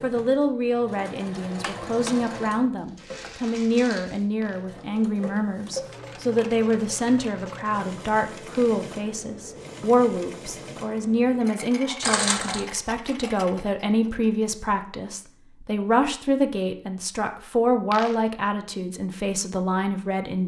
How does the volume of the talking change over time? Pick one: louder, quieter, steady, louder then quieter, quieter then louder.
steady.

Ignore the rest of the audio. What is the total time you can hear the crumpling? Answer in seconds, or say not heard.
3 s.